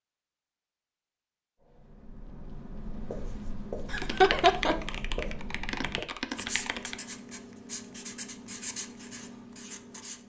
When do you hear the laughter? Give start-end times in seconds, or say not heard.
3.9-4.8.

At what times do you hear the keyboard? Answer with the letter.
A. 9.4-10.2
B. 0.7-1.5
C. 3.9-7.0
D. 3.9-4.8
C.